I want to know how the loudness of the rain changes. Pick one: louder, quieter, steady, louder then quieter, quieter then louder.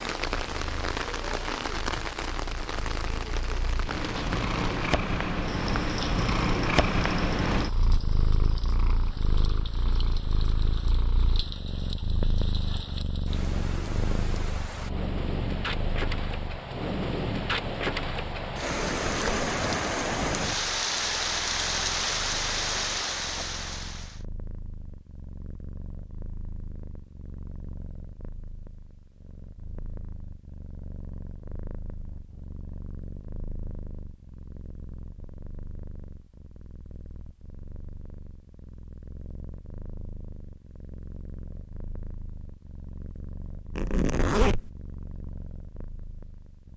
quieter then louder.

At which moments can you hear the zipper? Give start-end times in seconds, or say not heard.
18.7-19.4, 43.8-44.7.